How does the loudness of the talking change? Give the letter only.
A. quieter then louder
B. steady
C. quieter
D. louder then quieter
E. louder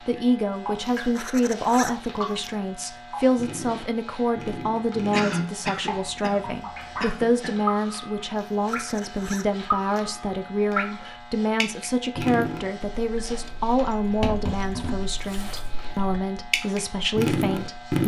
B.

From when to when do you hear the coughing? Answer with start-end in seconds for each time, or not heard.
5.1-7.5.